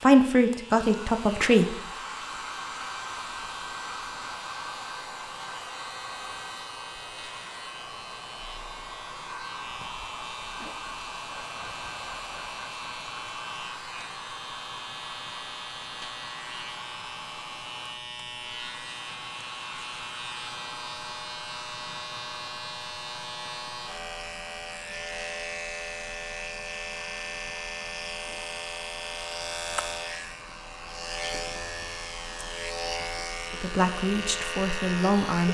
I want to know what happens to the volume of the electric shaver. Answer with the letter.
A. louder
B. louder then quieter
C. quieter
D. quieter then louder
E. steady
A.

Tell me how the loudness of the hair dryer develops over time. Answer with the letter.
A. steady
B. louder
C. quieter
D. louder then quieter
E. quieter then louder
C.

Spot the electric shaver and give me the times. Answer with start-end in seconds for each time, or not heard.
0.0-35.4.